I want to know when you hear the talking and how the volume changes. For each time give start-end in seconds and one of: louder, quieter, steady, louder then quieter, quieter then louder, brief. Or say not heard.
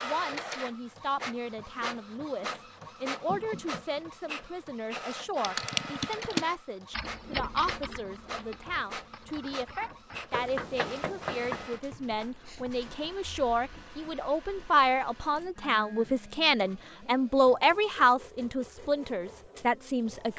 0.0-20.3 louder.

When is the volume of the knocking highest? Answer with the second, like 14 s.
11 s.